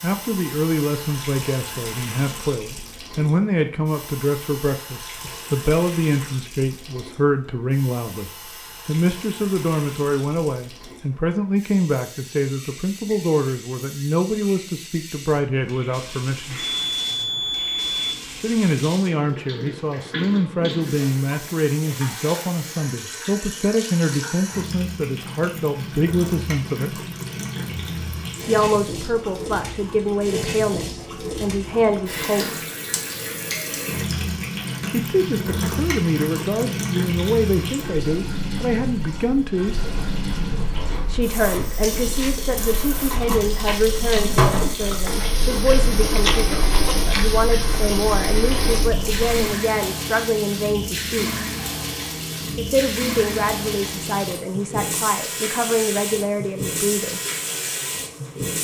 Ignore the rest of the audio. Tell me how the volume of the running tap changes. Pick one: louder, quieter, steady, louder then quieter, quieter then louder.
louder.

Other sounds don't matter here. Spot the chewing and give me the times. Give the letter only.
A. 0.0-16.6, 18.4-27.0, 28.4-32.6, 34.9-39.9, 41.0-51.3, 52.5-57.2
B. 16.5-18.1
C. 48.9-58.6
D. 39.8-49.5
D.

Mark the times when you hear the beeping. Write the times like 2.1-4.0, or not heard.
16.5-18.1.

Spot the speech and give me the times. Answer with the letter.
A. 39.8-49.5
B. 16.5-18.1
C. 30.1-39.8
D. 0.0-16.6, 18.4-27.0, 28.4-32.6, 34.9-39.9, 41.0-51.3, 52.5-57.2
D.